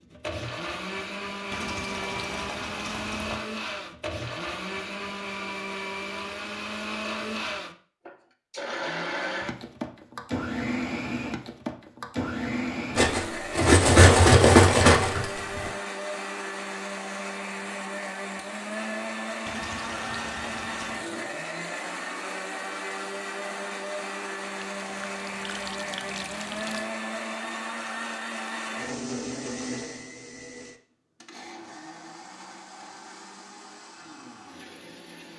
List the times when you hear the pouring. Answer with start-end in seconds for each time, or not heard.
1.5-3.5, 19.4-21.1, 24.8-26.9.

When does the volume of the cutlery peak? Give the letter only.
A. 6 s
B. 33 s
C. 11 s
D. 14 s
D.